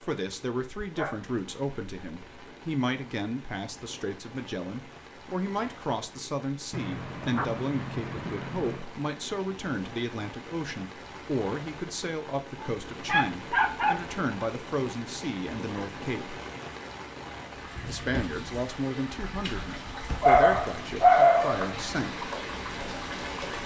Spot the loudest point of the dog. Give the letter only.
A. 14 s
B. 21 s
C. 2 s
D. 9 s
B.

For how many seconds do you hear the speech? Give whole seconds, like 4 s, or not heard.
21 s.